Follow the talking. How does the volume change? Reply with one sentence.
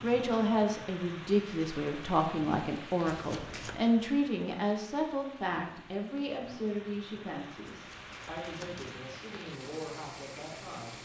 The volume of the talking goes down.